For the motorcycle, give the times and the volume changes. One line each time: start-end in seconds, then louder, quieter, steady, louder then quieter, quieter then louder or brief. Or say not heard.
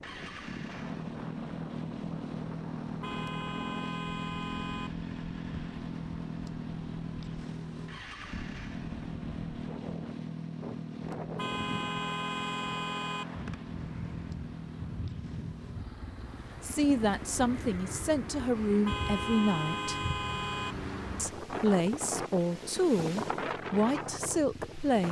0.0-25.0 quieter.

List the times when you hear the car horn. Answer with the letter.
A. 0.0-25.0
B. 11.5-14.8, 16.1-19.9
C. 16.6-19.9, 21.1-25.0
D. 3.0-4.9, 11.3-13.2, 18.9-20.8
D.